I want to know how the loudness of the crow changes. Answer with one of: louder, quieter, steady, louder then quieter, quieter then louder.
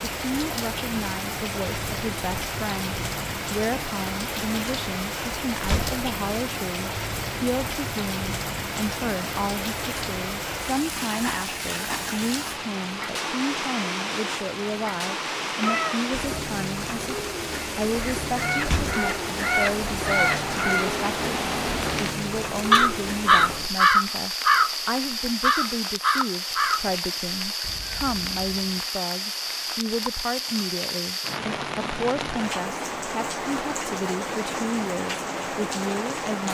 louder then quieter.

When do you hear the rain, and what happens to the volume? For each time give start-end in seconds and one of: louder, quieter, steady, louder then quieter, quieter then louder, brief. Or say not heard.
0.0-36.4 steady.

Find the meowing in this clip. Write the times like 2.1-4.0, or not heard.
15.6-16.4.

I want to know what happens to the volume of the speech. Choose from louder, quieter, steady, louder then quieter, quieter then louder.
steady.